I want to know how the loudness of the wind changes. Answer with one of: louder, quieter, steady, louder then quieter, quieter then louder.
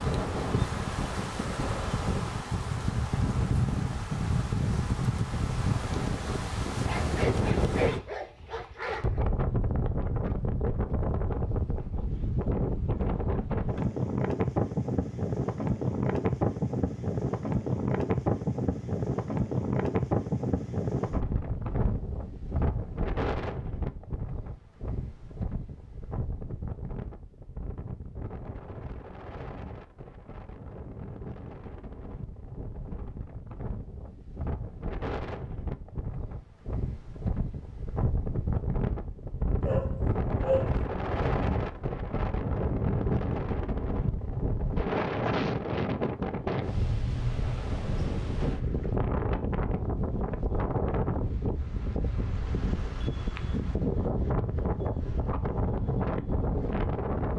quieter then louder.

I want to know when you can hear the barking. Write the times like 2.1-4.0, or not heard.
6.8-9.2, 39.6-40.8.